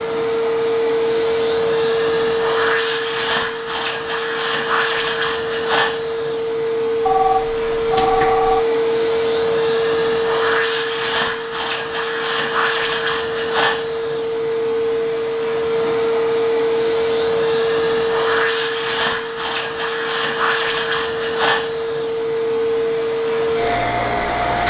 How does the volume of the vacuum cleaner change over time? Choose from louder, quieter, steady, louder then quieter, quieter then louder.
steady.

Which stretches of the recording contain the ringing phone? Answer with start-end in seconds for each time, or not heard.
7.0-8.7.